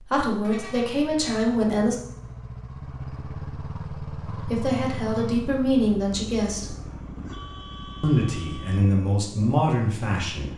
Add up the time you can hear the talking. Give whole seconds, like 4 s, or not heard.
7 s.